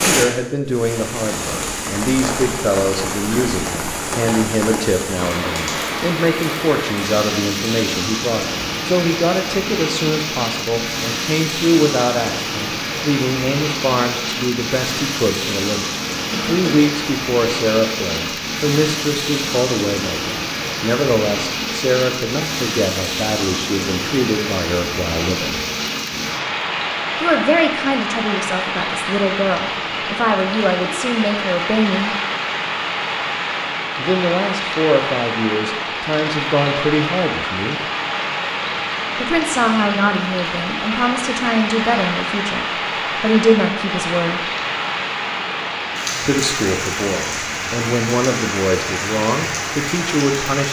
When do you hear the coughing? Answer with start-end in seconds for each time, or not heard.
16.2-16.9.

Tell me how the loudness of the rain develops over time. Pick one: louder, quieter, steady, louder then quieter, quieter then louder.
steady.